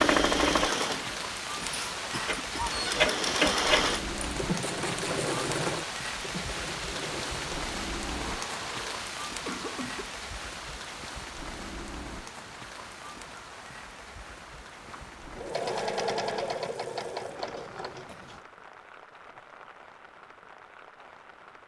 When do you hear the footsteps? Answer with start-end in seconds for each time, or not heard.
not heard.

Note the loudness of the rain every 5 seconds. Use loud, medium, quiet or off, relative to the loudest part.
loud, loud, medium, quiet, quiet.